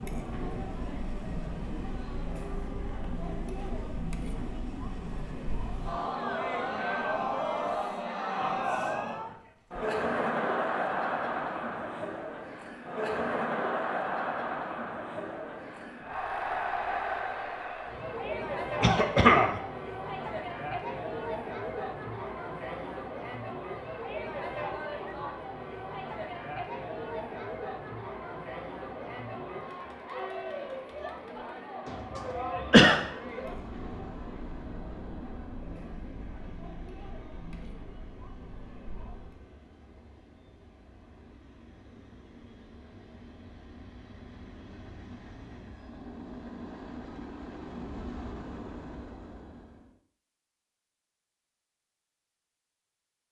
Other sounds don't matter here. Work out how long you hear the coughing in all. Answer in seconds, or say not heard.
2 s.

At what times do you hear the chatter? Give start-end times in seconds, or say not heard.
0.0-39.4.